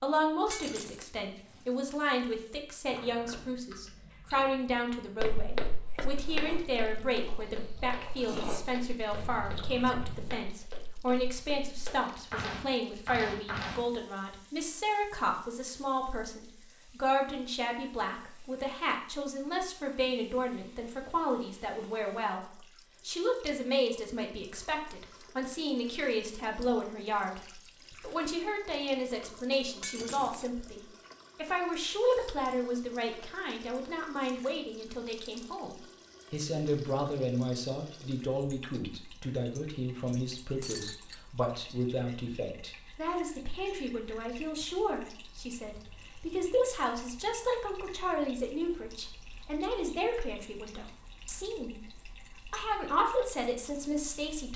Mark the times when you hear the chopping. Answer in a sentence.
You can't hear the chopping here.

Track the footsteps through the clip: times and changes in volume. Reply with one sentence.
You can hear the footsteps from 5.2 to 13.8 s, getting quieter then louder.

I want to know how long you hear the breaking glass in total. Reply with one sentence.
The breaking glass can be heard for 2 seconds in total.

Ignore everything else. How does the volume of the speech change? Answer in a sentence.
The volume of the speech stays about the same.